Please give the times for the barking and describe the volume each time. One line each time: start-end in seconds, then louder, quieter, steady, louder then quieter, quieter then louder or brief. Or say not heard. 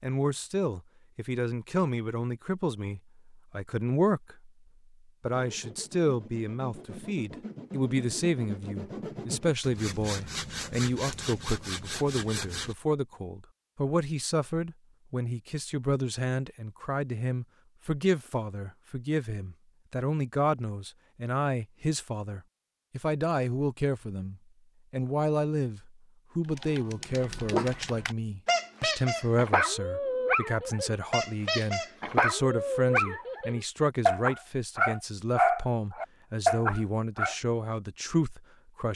26.6-37.4 louder.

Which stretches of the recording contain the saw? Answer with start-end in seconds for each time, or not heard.
5.3-12.8.